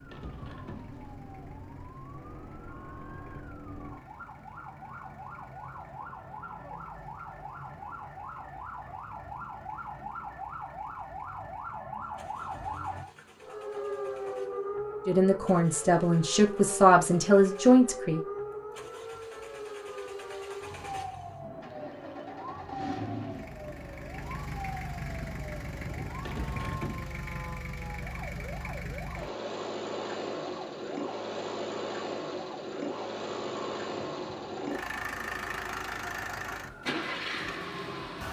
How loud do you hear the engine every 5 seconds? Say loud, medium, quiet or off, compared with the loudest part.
quiet, quiet, quiet, quiet, medium, loud, loud, loud.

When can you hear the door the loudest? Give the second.
27 s.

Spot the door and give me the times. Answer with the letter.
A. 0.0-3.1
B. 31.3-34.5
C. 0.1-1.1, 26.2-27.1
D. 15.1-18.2
C.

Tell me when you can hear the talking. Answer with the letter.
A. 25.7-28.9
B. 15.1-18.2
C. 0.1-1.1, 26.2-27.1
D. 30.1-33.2
B.